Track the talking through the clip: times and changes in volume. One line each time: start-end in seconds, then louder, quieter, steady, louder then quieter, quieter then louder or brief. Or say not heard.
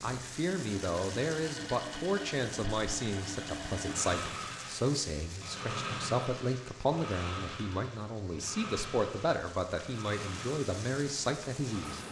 0.0-12.0 steady.